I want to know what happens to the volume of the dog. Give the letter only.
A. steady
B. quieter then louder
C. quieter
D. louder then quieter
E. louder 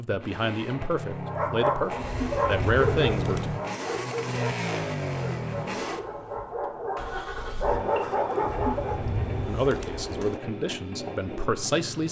B.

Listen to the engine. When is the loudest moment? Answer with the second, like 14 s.
5 s.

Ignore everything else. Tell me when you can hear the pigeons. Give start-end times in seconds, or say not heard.
1.9-3.6, 8.4-10.4.